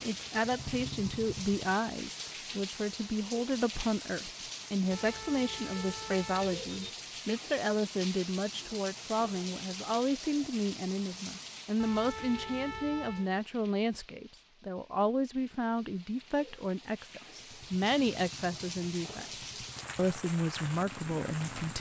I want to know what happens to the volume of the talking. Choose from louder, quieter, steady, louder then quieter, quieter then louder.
steady.